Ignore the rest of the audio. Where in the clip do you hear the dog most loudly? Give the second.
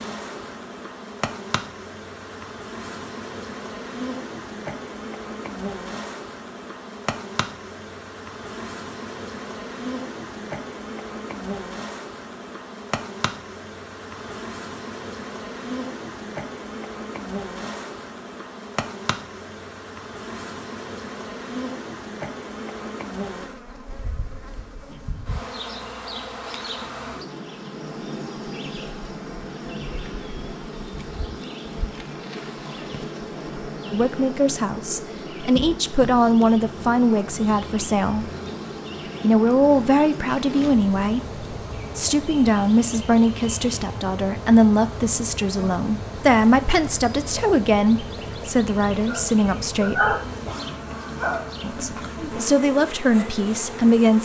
50 s.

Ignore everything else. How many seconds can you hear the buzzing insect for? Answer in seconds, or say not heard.
54 s.